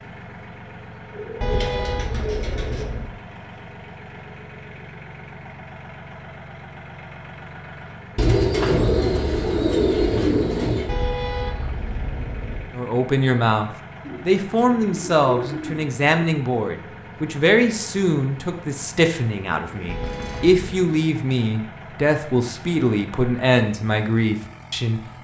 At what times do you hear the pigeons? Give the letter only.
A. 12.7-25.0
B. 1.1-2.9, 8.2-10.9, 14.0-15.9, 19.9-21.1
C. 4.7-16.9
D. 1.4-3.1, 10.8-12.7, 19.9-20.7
B.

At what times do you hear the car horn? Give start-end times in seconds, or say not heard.
1.4-3.1, 10.8-12.7, 19.9-20.7.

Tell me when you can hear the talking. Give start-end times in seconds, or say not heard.
12.7-25.0.